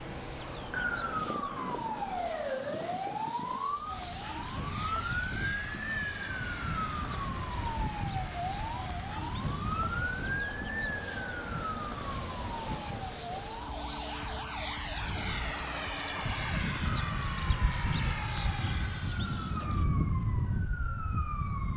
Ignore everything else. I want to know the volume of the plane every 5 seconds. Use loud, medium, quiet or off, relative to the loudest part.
medium, medium, loud, loud, loud.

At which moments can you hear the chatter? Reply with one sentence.
The chatter can't be heard in this clip.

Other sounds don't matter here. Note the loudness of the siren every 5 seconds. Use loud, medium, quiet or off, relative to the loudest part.
loud, loud, loud, medium, medium.